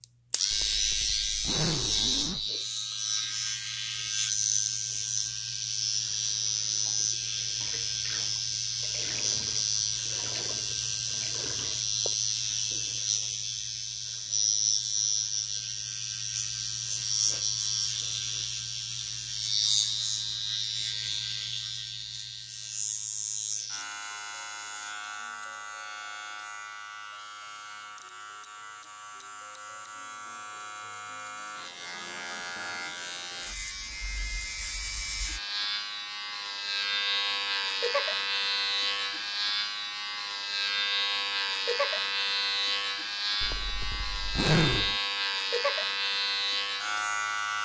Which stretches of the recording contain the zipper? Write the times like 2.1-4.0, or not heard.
0.5-2.5, 43.4-45.0.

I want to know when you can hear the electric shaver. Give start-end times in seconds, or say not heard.
0.0-47.6.